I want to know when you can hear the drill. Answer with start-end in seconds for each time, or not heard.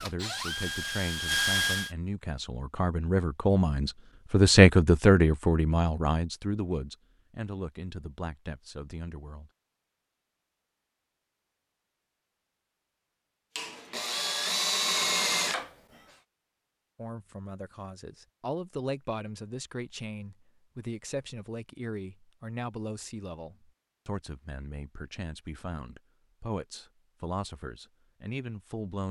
0.0-1.9, 13.6-15.7.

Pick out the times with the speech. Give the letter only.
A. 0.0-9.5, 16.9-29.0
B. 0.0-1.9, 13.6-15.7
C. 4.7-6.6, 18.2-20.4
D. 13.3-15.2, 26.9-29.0
A.